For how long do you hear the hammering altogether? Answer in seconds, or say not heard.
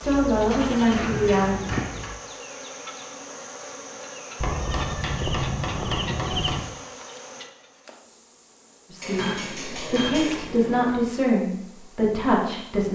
6 s.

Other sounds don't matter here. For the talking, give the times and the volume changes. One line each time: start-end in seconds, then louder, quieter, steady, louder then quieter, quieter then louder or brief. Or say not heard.
0.0-1.6 brief
8.9-12.9 louder.